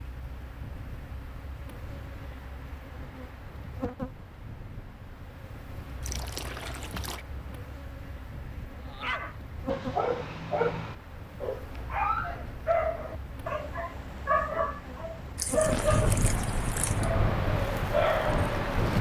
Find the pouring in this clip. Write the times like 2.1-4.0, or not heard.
6.0-7.2, 15.3-17.1.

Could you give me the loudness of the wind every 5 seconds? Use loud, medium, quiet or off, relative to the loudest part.
quiet, quiet, quiet, loud.